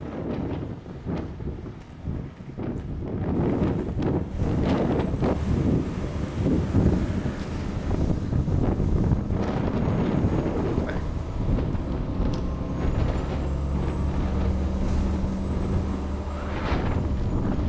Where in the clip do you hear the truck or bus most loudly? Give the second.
15 s.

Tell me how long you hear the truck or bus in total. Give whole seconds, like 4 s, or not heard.
13 s.